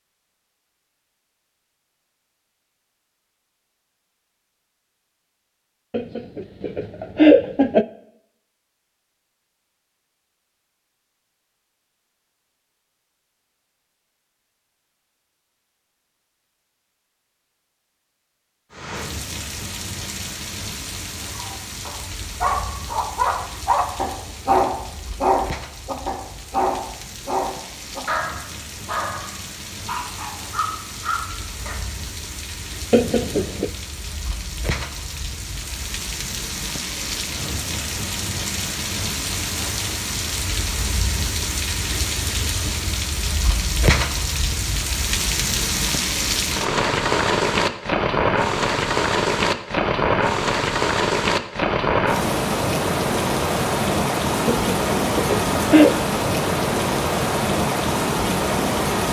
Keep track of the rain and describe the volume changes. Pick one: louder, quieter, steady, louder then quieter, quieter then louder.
louder.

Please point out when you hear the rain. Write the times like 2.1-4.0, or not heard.
18.7-59.0.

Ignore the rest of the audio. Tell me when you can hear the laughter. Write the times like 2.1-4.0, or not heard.
5.9-7.8, 32.9-33.7, 54.5-56.0.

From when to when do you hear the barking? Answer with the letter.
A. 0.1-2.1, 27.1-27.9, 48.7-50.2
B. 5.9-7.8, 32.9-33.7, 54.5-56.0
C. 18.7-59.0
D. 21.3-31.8
D.